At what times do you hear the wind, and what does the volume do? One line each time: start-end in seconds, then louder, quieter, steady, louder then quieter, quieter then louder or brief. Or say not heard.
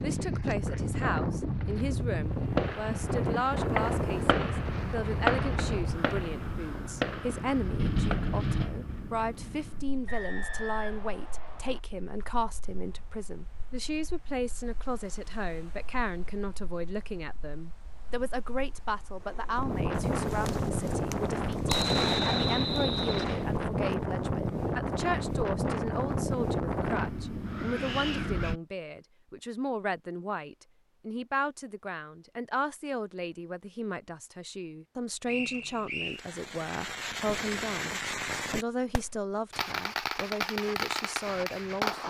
0.0-28.6 quieter then louder.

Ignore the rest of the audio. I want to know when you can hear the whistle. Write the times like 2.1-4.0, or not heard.
10.1-11.8, 21.6-23.4, 35.2-36.2.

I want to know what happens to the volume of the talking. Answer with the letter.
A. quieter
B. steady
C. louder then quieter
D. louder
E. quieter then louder
B.